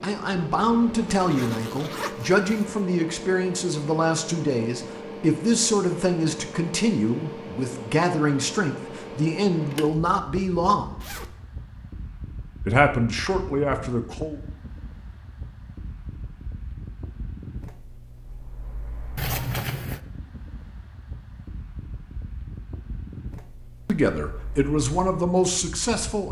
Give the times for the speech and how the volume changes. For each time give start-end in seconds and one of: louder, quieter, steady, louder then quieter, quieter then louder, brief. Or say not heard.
0.0-11.0 steady
12.7-14.4 brief
23.9-26.2 brief.